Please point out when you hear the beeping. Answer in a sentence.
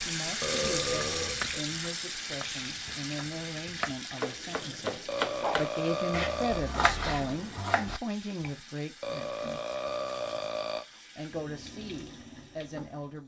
You can't hear the beeping here.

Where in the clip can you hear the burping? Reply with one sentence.
The burping can be heard from 0.4 to 1.6 s, from 5.0 to 6.7 s and from 9.0 to 10.8 s.